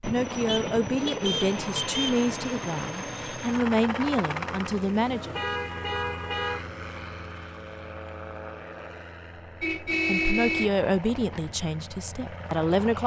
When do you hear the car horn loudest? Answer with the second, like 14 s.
10 s.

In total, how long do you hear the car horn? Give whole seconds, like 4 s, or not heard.
5 s.